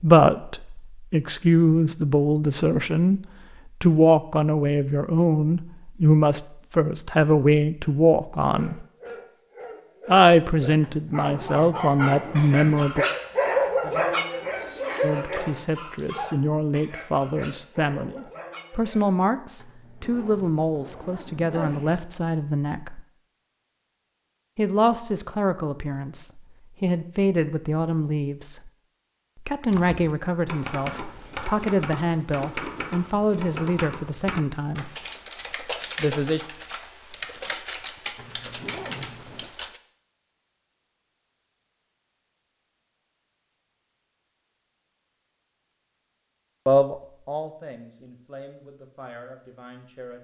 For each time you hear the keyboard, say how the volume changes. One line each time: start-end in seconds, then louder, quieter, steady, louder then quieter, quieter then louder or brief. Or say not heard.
29.7-39.8 steady.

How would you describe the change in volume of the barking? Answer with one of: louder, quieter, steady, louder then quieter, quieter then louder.
louder then quieter.